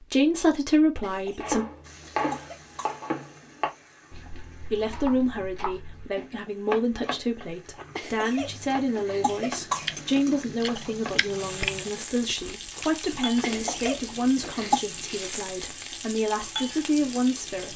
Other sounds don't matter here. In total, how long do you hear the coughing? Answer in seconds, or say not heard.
6 s.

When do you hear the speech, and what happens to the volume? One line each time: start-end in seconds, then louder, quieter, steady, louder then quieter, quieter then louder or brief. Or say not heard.
0.0-1.6 brief
4.7-17.7 steady.